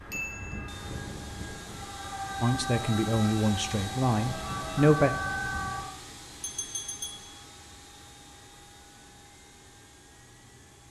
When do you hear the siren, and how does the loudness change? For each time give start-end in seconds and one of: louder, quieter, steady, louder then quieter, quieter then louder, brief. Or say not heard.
0.0-5.8 louder.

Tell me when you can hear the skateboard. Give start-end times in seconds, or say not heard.
not heard.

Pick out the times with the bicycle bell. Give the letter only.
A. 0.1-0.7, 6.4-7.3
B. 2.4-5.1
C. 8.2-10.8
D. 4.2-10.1
A.